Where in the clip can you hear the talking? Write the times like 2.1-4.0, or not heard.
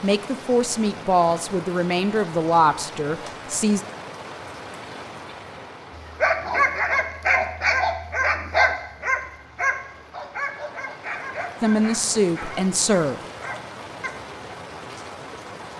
0.0-3.8, 11.6-13.2.